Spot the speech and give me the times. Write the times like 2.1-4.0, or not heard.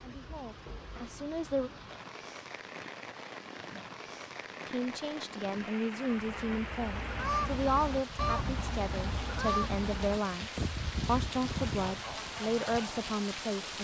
0.0-1.7, 4.7-13.7.